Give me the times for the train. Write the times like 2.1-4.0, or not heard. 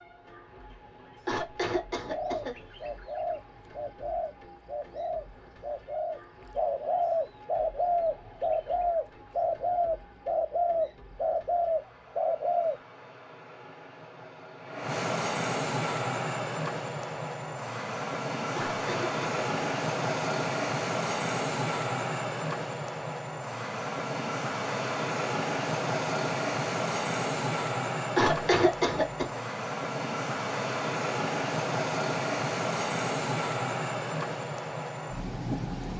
0.0-35.9.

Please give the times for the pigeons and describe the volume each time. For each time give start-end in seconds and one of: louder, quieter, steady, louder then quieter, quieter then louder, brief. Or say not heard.
2.0-12.8 louder.